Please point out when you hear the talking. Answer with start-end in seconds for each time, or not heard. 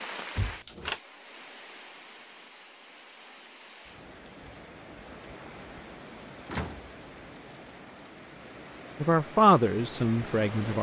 9.0-10.7.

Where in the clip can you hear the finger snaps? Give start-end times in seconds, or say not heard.
not heard.